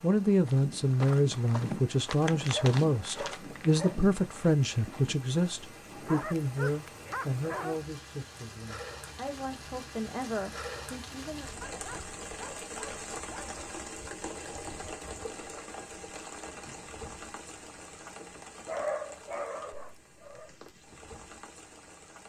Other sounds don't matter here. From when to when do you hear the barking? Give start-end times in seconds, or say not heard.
2.5-4.0, 5.9-7.8, 11.6-13.6, 18.6-20.5.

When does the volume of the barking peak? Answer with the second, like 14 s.
19 s.